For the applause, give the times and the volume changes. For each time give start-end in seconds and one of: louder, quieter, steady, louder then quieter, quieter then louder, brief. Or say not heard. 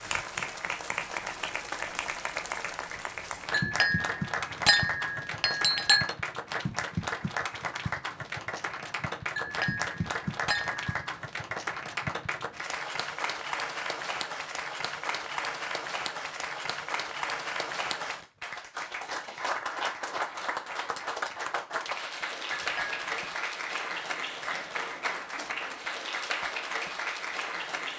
0.0-27.9 steady.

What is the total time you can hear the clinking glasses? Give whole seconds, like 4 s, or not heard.
5 s.